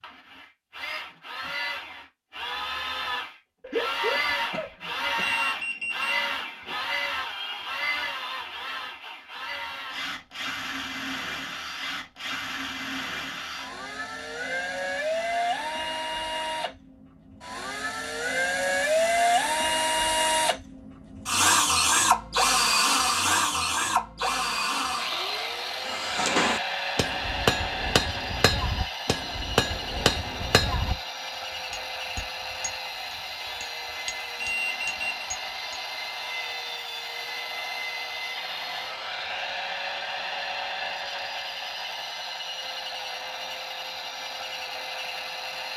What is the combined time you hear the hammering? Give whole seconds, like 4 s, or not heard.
10 s.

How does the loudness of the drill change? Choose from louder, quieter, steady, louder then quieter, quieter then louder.
louder then quieter.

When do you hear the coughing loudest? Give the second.
4 s.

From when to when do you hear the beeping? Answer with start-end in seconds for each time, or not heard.
5.2-6.8, 34.4-35.3.